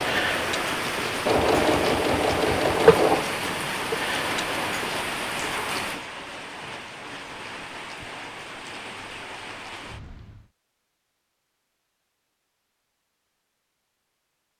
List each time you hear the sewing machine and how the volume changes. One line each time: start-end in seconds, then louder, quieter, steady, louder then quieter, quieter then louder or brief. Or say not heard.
0.0-5.0 louder then quieter.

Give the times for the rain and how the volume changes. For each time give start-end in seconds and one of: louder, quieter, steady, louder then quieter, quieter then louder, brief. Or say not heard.
0.0-10.5 quieter.